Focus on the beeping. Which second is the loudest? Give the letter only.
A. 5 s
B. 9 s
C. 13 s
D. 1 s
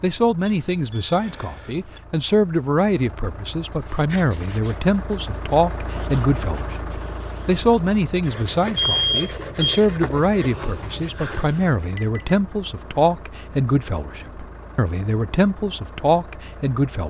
B.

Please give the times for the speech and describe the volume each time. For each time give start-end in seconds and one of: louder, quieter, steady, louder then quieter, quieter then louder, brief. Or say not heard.
0.0-17.0 steady.